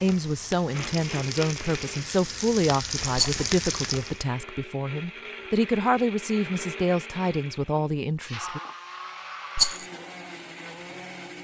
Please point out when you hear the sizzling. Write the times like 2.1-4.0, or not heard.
0.0-4.2.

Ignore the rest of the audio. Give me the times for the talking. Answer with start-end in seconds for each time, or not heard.
0.0-8.6.